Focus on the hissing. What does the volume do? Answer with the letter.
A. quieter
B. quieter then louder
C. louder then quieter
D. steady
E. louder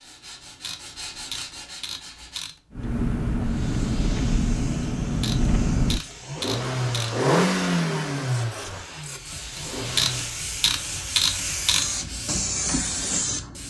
E.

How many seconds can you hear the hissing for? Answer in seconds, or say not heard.
10 s.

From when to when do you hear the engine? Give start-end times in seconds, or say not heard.
2.8-10.4.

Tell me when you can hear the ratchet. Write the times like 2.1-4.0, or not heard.
0.2-2.8, 5.0-7.2, 9.6-11.9.